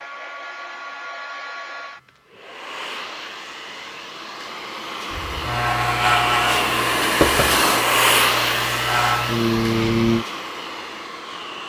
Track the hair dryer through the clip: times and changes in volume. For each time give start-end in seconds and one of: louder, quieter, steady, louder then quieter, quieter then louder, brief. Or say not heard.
0.0-11.6 louder then quieter.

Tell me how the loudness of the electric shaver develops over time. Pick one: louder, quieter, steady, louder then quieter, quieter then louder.
quieter then louder.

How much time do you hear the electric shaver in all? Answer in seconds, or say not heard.
5 s.